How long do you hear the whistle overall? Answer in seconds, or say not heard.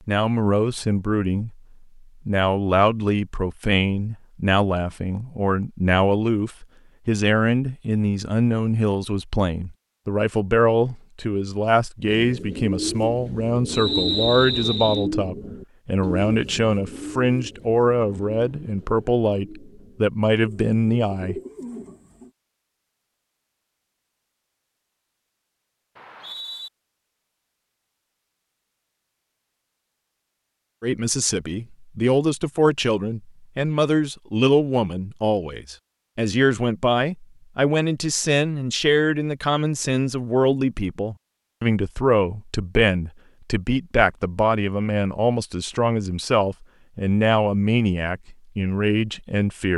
2 s.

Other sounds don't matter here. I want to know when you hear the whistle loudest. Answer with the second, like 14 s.
14 s.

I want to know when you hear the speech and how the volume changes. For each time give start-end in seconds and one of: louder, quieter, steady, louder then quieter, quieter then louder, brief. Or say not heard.
0.1-1.6 brief
2.2-21.4 steady
30.8-49.7 steady.